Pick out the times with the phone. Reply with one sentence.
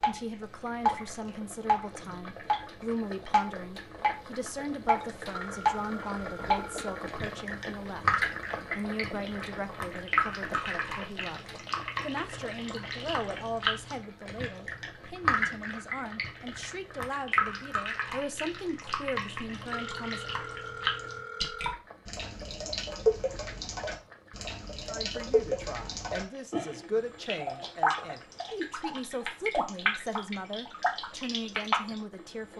You can hear the phone from 5.3 to 7.0 s and from 19.7 to 21.8 s.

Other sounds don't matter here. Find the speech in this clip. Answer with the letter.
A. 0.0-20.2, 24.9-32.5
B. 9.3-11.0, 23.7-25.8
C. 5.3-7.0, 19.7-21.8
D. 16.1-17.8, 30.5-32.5
A.